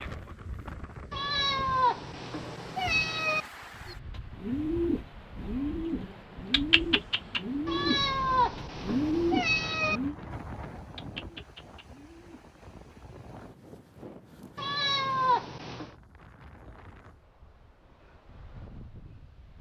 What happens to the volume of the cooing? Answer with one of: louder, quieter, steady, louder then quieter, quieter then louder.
quieter.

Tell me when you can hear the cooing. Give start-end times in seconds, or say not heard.
3.9-12.7.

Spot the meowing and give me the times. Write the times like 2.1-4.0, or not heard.
1.1-3.5, 7.7-10.0, 14.6-15.9.